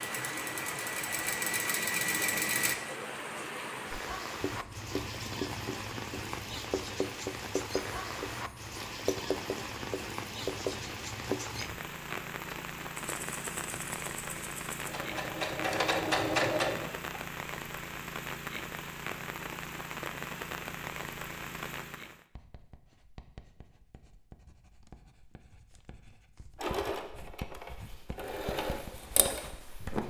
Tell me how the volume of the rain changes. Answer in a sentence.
The volume of the rain stays about the same.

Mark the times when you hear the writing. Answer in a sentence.
You can hear the writing from 3.9 to 11.8 s and from 22.3 to 30.0 s.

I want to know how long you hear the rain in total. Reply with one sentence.
The rain can be heard for 22 seconds in total.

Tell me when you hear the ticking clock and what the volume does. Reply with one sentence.
You can't hear the ticking clock here.